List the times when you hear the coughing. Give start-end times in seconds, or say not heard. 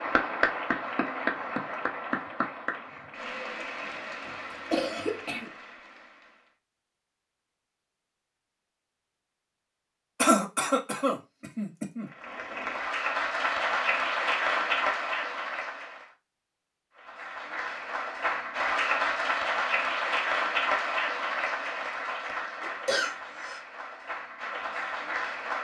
4.2-5.5, 10.2-12.1, 22.6-23.6.